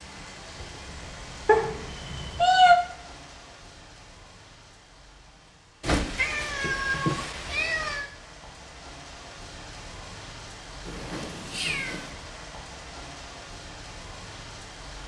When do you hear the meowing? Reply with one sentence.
The meowing can be heard from 1.4 to 2.8 s, from 5.8 to 8.1 s and from 10.8 to 12.1 s.